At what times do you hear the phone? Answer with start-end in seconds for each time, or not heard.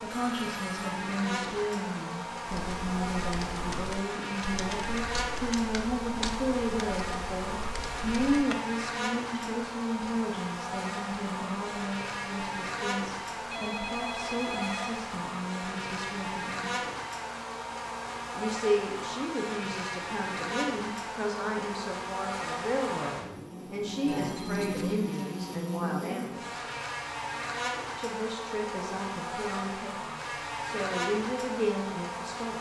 0.1-0.8, 13.5-15.1, 24.1-25.0.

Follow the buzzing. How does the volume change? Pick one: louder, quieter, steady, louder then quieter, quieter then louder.
steady.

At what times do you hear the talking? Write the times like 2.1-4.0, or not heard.
0.0-16.9, 18.3-26.6, 27.9-32.5.